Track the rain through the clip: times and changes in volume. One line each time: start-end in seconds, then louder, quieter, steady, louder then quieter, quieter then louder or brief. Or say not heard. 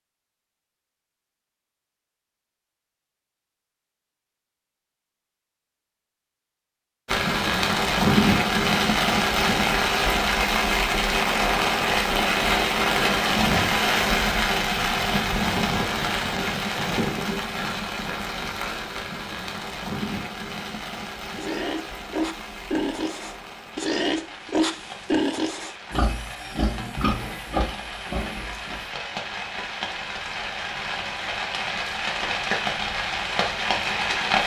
7.0-34.4 quieter then louder.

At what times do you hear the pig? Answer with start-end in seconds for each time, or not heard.
21.4-28.9.